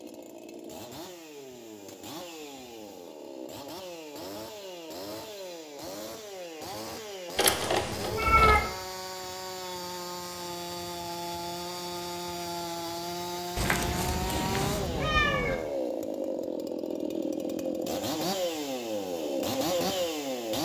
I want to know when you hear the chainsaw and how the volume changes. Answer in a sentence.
The chainsaw can be heard from 0.0 to 20.6 s, getting louder.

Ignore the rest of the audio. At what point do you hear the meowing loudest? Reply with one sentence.
The loudest moment of the meowing is at 8 seconds.